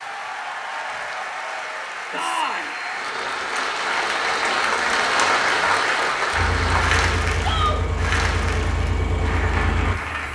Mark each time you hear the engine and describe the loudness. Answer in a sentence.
The engine can be heard from 6.3 to 10.3 s, at a steady volume.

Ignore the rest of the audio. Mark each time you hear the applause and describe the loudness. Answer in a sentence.
You can hear the applause from 0.0 to 10.3 s, getting louder then quieter.